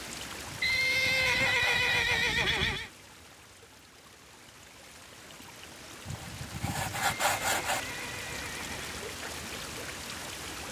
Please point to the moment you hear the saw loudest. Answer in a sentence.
The volume of the saw peaks at 7 seconds.